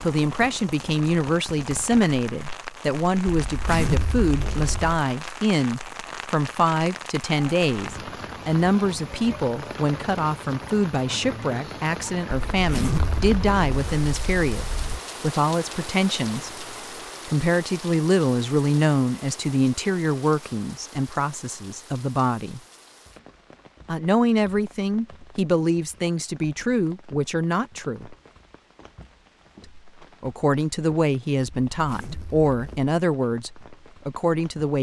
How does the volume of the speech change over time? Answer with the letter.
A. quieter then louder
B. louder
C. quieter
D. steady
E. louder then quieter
D.